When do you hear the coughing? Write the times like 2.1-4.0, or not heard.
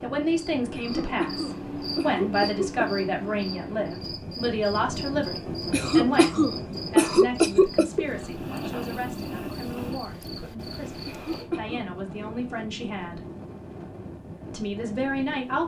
0.7-2.9, 5.7-8.1, 11.1-11.9.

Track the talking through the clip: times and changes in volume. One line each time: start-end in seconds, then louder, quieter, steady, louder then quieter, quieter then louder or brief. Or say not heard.
0.0-13.2 quieter
14.5-15.6 brief.